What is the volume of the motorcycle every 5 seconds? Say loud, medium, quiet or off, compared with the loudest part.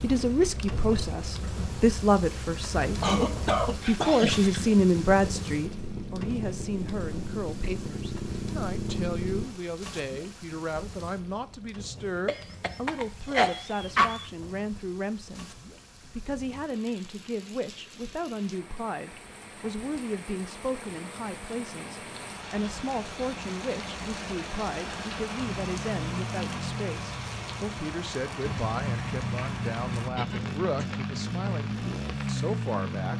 medium, loud, off, off, off, loud, loud.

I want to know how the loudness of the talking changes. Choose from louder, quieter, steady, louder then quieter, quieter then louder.
quieter.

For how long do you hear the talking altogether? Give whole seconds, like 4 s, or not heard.
33 s.